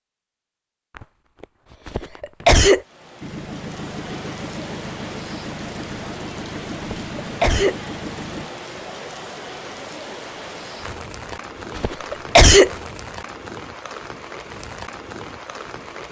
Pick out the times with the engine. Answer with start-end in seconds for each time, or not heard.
3.2-8.5.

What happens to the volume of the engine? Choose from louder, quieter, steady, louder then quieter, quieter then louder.
steady.